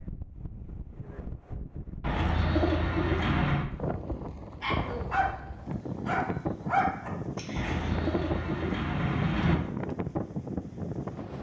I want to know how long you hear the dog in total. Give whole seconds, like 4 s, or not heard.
3 s.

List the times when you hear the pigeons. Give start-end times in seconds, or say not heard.
2.0-3.7, 7.5-9.6.